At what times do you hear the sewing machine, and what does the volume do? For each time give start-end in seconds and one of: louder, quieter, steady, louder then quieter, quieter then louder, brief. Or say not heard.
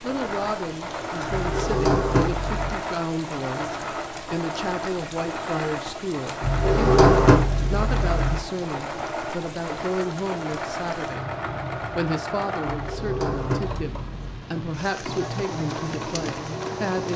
0.0-17.1 steady.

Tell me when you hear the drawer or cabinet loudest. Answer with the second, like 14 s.
7 s.